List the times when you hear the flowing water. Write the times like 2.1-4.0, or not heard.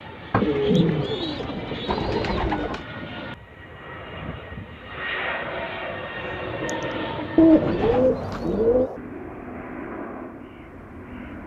not heard.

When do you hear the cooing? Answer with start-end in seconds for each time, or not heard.
0.3-2.9, 7.3-8.9.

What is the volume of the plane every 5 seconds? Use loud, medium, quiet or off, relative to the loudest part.
medium, loud, medium.